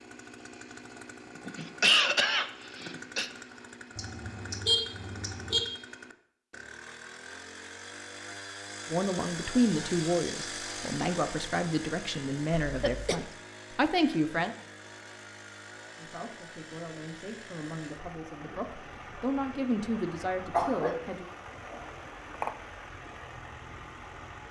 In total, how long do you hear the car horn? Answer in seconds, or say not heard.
2 s.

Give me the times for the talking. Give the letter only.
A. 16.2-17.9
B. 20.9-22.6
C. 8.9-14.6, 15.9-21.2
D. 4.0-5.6
C.